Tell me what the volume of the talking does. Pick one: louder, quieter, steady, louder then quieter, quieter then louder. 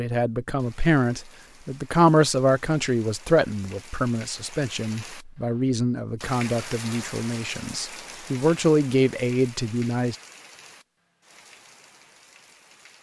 quieter then louder.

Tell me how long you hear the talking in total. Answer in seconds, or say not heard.
10 s.